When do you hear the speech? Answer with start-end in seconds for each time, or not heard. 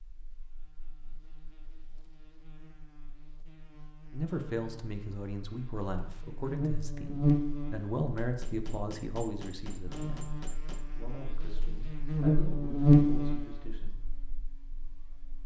4.1-13.9.